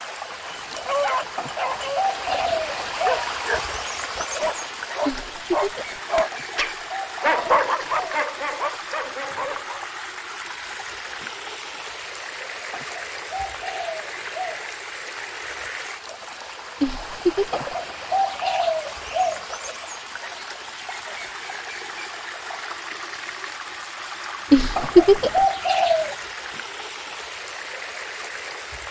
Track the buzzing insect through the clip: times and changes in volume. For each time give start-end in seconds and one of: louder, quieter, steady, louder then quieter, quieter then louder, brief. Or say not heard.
not heard.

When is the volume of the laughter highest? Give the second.
25 s.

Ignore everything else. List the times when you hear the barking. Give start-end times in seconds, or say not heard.
0.4-9.8.